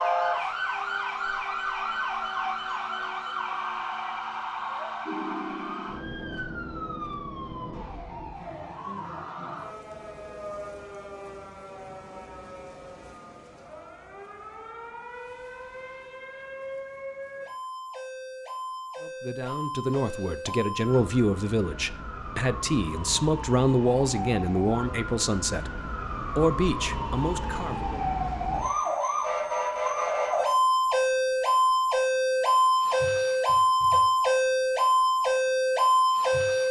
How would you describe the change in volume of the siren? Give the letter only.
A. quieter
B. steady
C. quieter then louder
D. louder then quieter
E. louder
C.